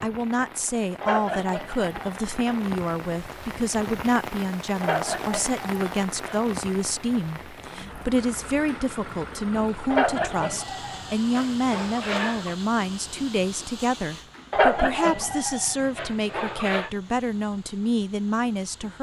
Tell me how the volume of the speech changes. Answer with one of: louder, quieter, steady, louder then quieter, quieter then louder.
steady.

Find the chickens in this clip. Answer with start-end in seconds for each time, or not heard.
1.0-2.6, 4.8-6.5, 9.9-12.6, 14.5-16.9.